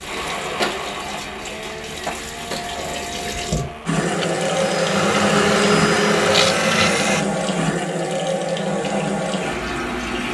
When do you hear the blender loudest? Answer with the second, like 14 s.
6 s.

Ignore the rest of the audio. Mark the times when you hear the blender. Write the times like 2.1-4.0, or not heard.
0.0-7.2.